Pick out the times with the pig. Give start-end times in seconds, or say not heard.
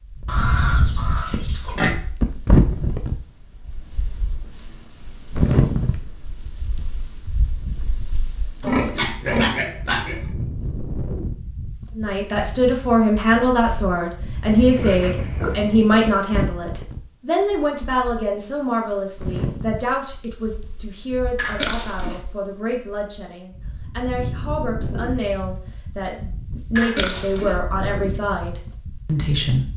0.2-2.0, 8.6-10.3, 14.4-16.0, 21.4-22.2, 26.8-27.6.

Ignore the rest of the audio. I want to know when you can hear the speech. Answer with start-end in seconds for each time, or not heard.
11.9-29.7.